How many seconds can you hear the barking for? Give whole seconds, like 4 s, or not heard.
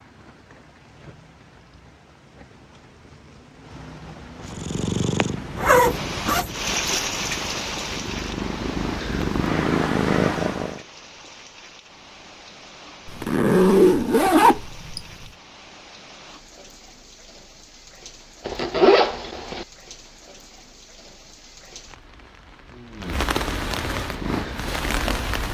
not heard.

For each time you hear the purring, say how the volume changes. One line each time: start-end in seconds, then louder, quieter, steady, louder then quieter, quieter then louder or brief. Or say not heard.
4.4-10.8 quieter then louder
24.0-25.5 brief.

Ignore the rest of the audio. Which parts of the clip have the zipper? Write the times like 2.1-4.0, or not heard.
5.5-6.5, 13.1-15.0, 18.4-19.6.